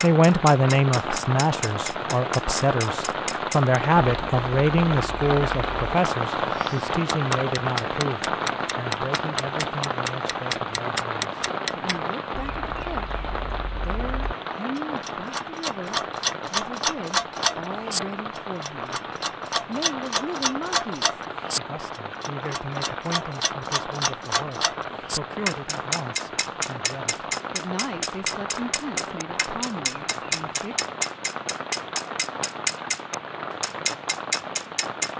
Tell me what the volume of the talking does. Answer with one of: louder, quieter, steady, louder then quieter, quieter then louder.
quieter.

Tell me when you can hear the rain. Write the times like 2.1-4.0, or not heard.
0.0-35.1.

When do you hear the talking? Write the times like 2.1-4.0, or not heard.
0.0-13.2, 13.8-30.8.